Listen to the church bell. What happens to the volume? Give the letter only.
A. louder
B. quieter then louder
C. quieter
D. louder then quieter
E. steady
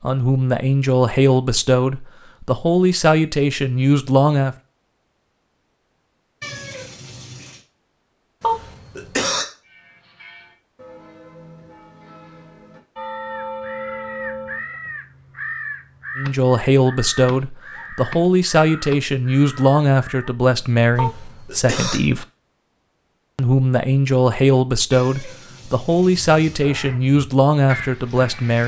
A.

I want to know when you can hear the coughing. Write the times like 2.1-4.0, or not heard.
8.4-9.4, 20.9-22.0.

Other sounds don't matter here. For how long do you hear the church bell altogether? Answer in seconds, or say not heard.
5 s.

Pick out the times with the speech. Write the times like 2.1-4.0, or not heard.
0.0-4.5, 16.1-22.2, 23.4-28.6.